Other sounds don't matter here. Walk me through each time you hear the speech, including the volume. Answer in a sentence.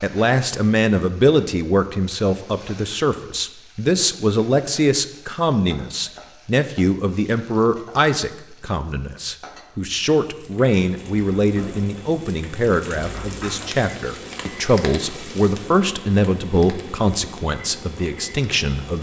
You can hear the speech from 0.0 to 18.9 s, at a steady volume.